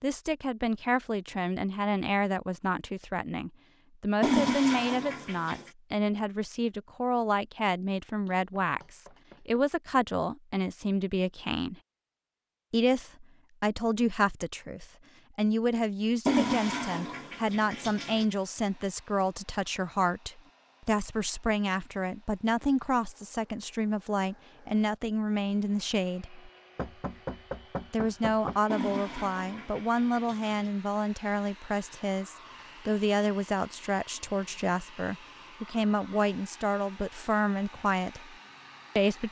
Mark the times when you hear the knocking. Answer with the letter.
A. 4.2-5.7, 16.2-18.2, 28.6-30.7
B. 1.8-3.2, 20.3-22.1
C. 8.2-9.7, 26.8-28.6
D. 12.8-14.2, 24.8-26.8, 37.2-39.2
C.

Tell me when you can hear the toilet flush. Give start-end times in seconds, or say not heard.
4.2-5.7, 16.2-18.2, 28.6-30.7.